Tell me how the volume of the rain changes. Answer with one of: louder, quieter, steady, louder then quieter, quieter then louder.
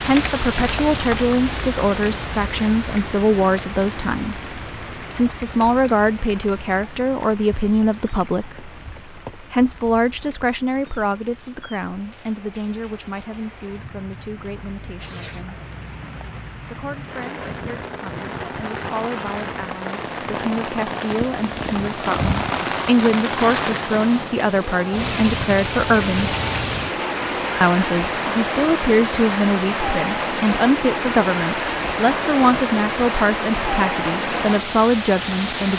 quieter then louder.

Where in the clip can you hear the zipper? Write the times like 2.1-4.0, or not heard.
14.4-15.4.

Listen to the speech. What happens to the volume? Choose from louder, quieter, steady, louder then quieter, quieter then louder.
quieter then louder.